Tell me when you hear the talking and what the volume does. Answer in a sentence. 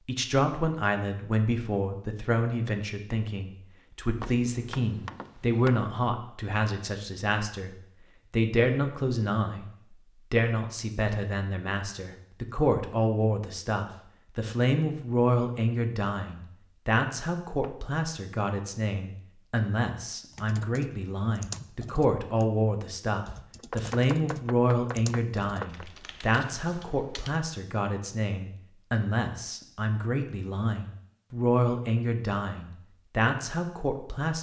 You can hear the talking from 0.1 to 34.3 s, at a steady volume.